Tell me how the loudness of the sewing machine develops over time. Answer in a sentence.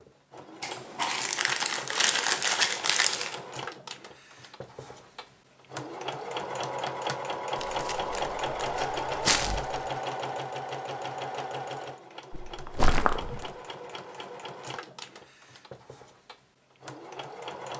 The loudness of the sewing machine goes up, then down.